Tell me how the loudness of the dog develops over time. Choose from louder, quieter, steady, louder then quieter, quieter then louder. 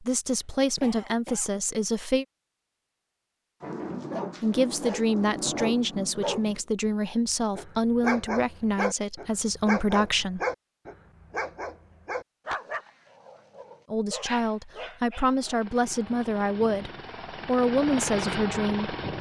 quieter.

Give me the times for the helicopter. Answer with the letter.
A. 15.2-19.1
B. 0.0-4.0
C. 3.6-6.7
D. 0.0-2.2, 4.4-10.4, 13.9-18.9
A.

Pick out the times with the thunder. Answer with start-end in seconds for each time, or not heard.
3.6-6.7.